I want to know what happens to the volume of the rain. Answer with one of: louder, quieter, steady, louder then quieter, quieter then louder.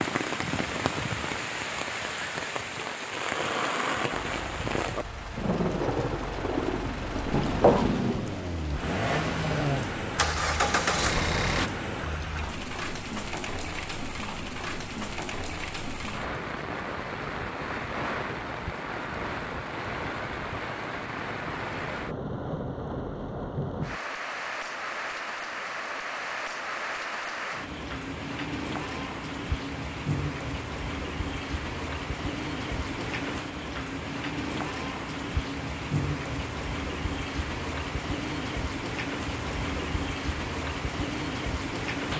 steady.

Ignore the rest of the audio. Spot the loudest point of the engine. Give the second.
11 s.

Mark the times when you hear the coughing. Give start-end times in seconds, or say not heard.
7.3-8.0.